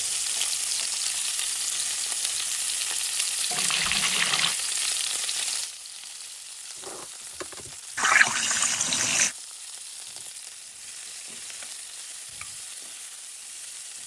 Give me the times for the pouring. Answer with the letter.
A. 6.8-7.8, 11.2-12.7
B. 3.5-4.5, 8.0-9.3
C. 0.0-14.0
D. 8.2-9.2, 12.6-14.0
B.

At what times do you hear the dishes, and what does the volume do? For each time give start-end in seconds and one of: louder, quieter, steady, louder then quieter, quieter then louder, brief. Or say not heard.
not heard.